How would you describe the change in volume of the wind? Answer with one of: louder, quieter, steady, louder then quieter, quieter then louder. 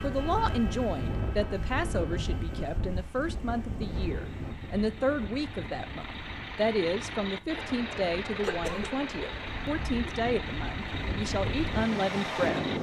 quieter then louder.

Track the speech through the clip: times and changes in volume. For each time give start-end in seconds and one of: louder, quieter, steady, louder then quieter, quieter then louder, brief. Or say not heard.
0.0-12.7 steady.